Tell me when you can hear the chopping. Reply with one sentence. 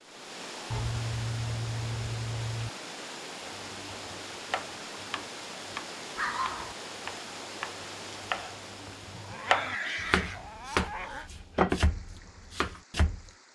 The chopping can be heard from 3.4 to 13.2 s.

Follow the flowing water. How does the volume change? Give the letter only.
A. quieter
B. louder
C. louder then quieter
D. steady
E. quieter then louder
A.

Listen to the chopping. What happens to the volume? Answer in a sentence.
The loudness of the chopping goes up.